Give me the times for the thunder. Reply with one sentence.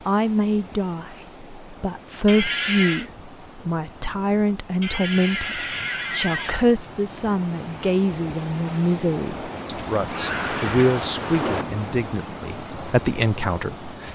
The thunder can be heard from 10.2 to 11.7 s.